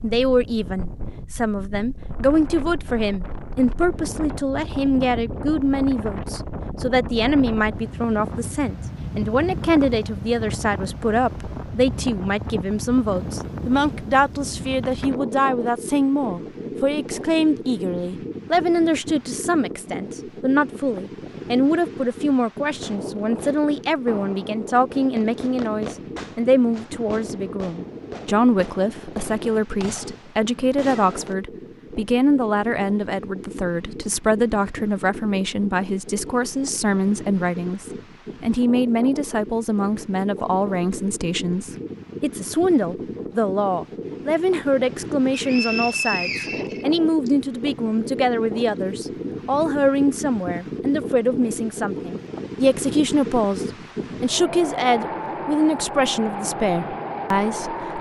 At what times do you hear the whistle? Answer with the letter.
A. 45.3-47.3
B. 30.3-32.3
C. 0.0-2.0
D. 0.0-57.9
A.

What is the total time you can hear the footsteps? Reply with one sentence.
The footsteps can't be heard in this clip.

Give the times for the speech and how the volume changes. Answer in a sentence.
You can hear the speech from 0.0 to 57.9 s, at a steady volume.